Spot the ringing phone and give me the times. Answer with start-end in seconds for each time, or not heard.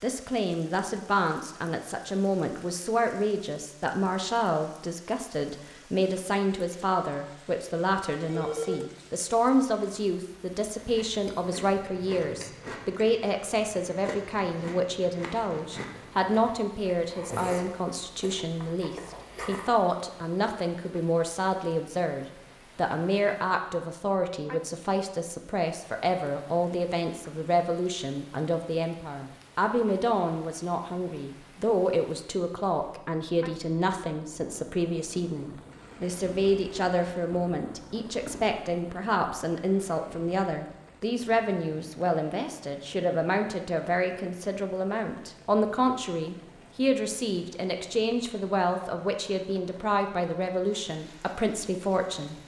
8.2-8.9.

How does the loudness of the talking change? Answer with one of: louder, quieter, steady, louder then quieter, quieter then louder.
steady.